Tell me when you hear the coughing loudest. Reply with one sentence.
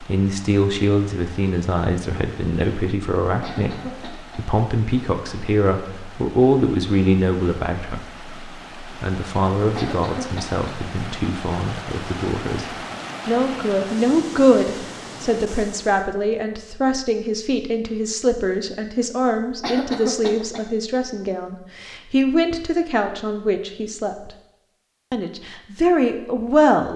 The loudest moment of the coughing is at 20 seconds.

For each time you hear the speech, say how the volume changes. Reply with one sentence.
You can hear the speech from 0.0 to 24.3 s, at a steady volume; and briefly from 25.1 to 26.9 s.